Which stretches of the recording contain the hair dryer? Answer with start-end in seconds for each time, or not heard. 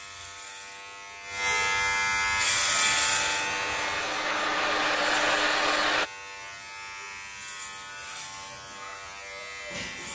2.4-6.1.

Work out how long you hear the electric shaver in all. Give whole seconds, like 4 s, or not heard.
10 s.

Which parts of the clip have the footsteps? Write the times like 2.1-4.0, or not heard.
not heard.